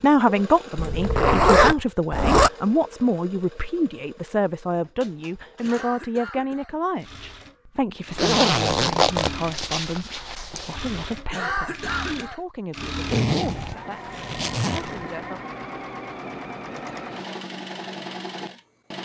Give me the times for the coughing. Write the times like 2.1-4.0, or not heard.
5.6-6.8, 11.3-12.4.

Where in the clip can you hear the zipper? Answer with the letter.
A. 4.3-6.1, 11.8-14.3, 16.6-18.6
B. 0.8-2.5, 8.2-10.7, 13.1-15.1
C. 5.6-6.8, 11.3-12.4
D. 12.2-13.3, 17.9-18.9
B.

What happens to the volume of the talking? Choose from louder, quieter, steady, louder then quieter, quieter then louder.
quieter.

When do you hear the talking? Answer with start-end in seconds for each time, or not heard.
0.0-15.4.